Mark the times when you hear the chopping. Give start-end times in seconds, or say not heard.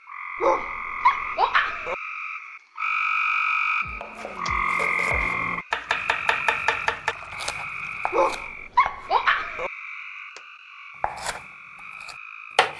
3.8-9.1, 11.0-12.7.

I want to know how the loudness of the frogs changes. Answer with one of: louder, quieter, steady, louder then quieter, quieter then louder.
louder then quieter.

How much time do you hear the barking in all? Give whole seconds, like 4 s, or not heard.
3 s.